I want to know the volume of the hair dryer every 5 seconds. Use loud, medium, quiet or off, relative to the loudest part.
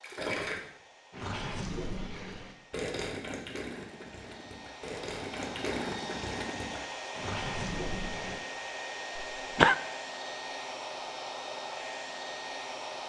quiet, loud, loud.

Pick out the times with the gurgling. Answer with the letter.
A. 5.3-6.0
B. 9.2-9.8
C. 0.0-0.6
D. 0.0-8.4
D.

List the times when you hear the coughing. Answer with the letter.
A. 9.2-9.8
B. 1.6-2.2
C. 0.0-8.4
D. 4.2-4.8
A.